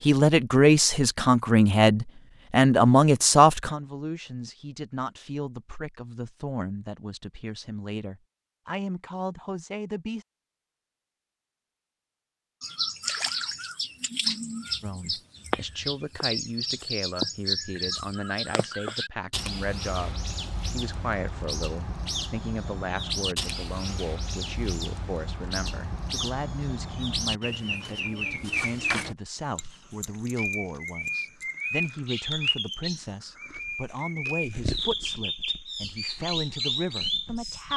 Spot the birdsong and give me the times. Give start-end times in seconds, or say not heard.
12.6-37.7.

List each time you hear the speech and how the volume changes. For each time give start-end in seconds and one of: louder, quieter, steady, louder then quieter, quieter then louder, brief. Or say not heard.
0.0-10.2 quieter
14.8-37.7 steady.